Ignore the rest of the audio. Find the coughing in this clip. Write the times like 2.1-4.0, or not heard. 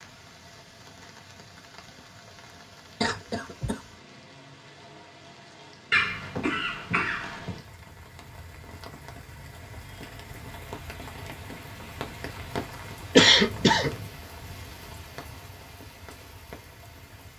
3.0-3.8, 5.9-7.6, 13.2-14.1.